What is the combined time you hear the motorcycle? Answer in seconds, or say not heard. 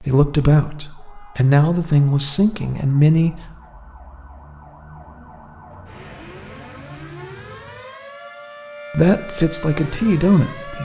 not heard.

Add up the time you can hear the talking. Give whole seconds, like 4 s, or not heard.
5 s.